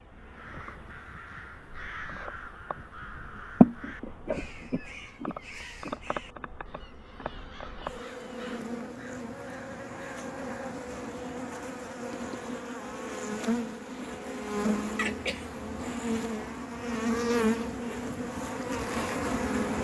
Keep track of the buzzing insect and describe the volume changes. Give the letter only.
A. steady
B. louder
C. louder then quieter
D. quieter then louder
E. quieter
B.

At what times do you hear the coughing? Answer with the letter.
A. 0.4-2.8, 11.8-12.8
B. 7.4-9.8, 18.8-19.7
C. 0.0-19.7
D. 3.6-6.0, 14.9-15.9
D.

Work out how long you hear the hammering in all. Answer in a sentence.
The hammering can't be heard in this clip.